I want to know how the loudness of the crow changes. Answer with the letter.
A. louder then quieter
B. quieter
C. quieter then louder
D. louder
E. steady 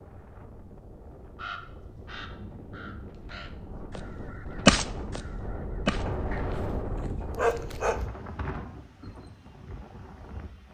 A.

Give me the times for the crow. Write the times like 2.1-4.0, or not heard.
1.4-6.7.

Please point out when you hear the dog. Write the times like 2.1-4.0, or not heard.
6.0-8.1.